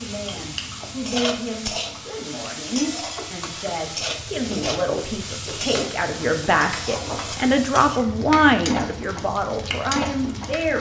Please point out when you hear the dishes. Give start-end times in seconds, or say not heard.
not heard.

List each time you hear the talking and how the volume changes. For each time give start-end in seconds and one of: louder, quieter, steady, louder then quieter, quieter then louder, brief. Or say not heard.
0.0-10.7 louder.